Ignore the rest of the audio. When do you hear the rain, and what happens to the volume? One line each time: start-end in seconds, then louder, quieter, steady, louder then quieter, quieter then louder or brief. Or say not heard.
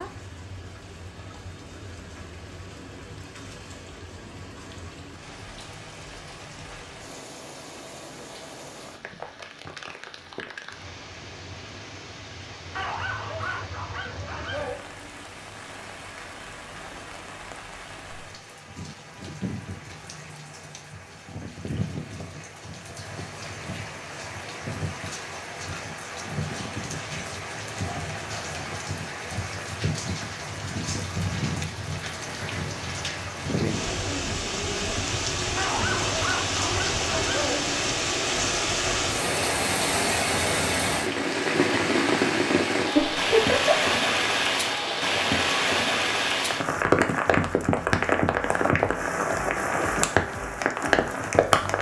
0.0-51.7 louder.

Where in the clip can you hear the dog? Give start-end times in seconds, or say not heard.
12.8-14.8, 35.5-37.6.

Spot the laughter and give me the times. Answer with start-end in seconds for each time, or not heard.
43.0-43.9.